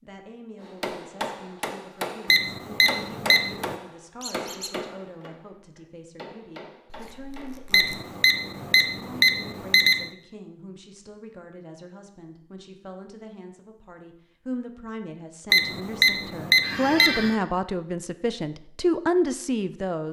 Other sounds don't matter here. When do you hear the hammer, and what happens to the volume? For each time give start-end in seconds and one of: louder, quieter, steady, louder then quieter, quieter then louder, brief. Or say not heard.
0.6-8.0 quieter.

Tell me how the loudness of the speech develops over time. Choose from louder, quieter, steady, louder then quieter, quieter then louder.
louder.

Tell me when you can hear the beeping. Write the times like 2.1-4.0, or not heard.
2.2-3.8, 7.7-10.1, 15.5-17.4.